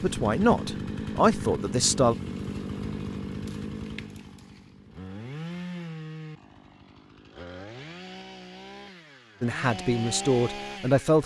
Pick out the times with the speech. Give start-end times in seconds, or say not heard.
0.0-2.1, 9.4-11.2.